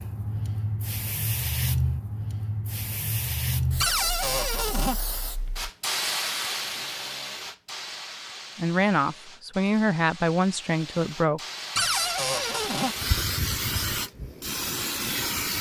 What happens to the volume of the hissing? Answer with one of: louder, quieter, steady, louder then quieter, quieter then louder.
quieter then louder.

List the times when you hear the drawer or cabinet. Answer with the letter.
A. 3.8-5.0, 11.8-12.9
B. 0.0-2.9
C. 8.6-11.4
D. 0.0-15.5
A.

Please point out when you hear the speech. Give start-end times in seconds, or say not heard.
8.6-11.4.